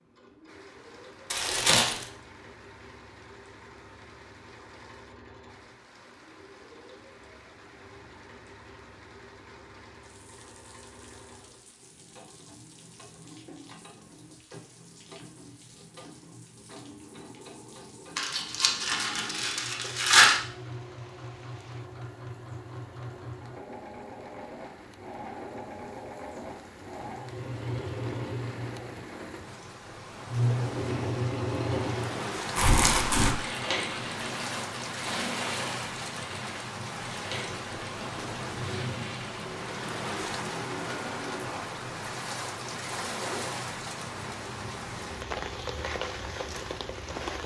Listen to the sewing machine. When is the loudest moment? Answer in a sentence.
The volume of the sewing machine peaks at 31 seconds.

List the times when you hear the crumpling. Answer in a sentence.
You can hear the crumpling from 1.3 to 2.0 s, from 18.1 to 20.4 s and from 32.5 to 33.4 s.